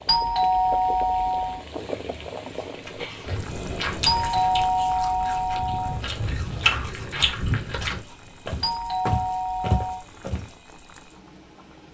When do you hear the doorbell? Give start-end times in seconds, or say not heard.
0.1-1.6, 4.0-6.0, 8.6-10.1.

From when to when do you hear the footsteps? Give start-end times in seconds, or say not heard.
3.2-10.5.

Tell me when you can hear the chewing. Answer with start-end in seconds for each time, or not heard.
2.6-8.0.